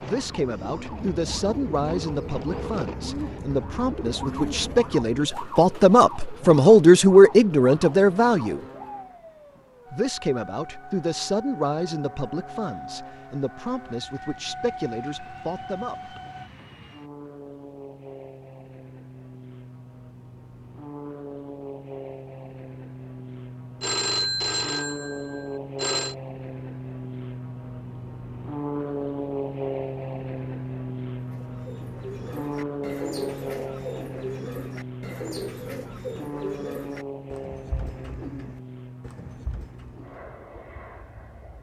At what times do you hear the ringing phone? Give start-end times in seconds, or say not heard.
1.9-2.6, 23.8-26.1.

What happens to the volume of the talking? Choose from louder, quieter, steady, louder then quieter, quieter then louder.
louder then quieter.